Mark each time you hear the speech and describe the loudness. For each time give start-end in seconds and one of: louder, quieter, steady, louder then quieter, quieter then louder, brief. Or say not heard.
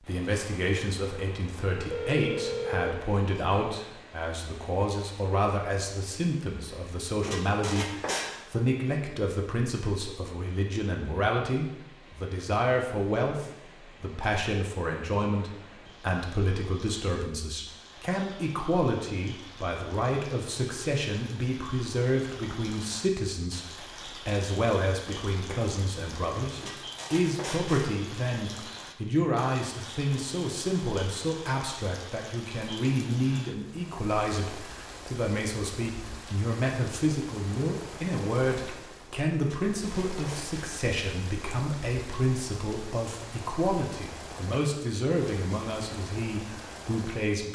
0.1-47.4 steady.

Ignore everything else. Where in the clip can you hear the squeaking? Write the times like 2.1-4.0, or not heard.
7.2-8.3, 26.6-27.9, 39.5-40.8.